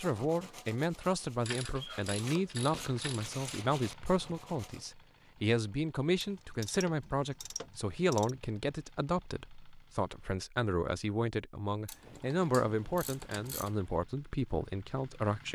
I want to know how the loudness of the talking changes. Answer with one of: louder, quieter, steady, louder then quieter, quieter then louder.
steady.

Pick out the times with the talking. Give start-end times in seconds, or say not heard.
0.0-15.5.